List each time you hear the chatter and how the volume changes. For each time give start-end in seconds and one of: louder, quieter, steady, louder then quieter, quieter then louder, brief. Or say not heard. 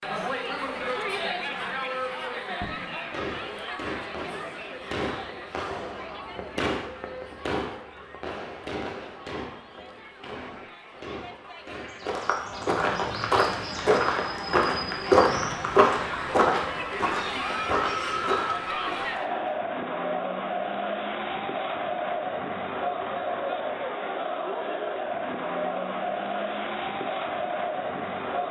0.0-28.4 quieter then louder.